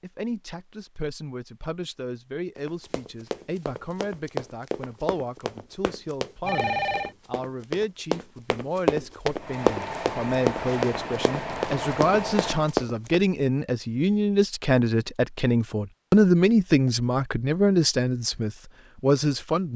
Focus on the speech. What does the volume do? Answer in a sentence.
The loudness of the speech goes up.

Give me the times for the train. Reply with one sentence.
You can hear the train from 9.3 to 12.8 s.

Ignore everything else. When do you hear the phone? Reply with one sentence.
The phone can be heard from 6.4 to 7.2 s.